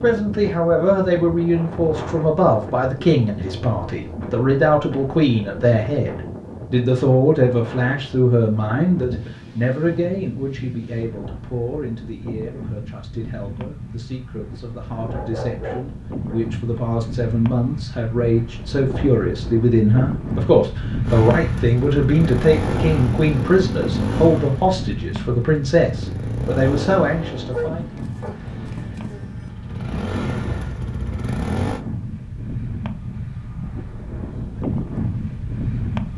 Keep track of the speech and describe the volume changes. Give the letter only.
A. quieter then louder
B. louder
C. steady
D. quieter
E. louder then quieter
A.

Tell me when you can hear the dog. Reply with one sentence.
The dog can be heard from 15.1 to 16.4 s and from 27.5 to 29.5 s.